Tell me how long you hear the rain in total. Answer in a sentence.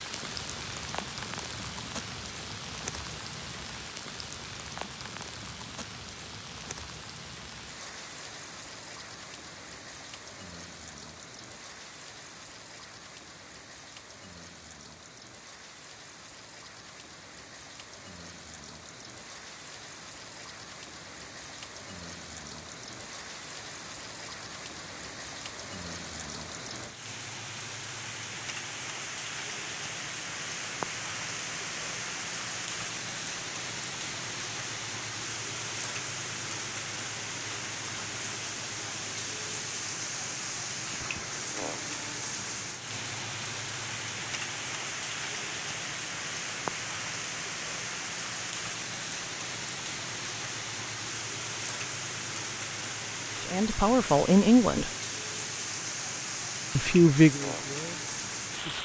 You can hear the rain for 59 seconds altogether.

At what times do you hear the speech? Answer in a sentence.
You can hear the speech from 53.4 to 54.9 s and from 56.8 to 58.8 s.